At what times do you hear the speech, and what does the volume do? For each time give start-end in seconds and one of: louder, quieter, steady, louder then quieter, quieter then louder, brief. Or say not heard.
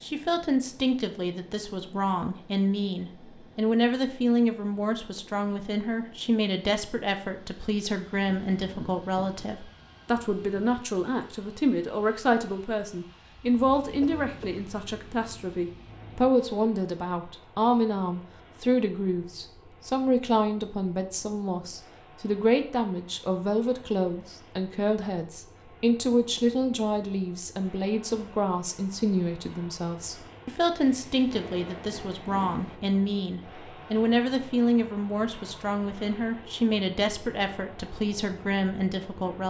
0.0-39.4 steady.